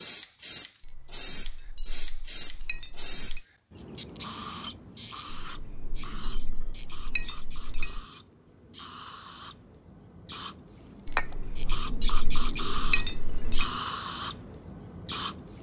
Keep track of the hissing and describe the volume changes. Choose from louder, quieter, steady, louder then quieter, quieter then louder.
quieter then louder.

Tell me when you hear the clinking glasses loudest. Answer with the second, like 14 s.
13 s.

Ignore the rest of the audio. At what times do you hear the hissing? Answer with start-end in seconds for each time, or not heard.
0.0-15.5.